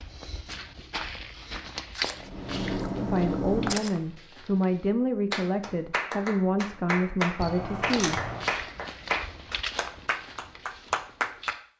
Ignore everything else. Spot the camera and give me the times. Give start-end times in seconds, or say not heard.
2.0-4.0, 7.3-8.5.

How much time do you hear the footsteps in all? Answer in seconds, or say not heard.
9 s.